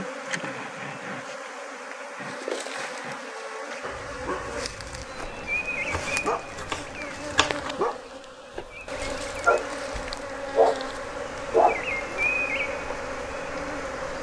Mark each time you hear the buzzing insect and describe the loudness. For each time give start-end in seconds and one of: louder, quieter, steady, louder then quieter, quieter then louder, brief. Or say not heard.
0.0-14.1 steady.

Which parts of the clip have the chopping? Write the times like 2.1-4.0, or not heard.
5.9-7.7.